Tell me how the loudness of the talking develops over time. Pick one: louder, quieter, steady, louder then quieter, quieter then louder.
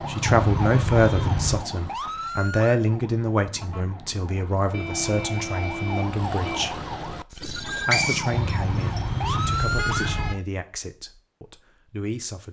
quieter.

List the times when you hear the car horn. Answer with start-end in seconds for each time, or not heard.
0.2-1.6, 4.7-6.7, 8.3-10.3.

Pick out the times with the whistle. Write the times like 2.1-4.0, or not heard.
7.3-9.0.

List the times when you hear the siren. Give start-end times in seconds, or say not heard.
0.0-10.4.